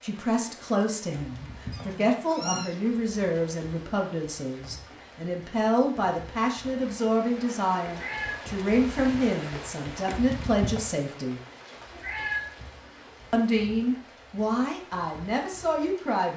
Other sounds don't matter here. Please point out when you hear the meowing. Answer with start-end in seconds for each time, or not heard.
1.7-2.8, 7.8-8.4, 11.8-12.5.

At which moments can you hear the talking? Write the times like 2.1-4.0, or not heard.
0.0-11.4, 13.3-16.3.